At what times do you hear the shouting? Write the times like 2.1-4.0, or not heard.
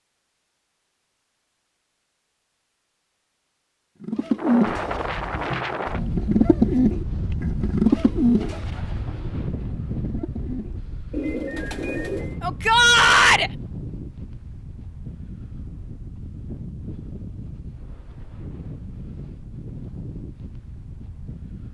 12.4-13.5.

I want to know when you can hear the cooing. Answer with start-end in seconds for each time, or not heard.
4.0-12.3.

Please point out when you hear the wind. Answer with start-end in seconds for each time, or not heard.
4.3-21.6.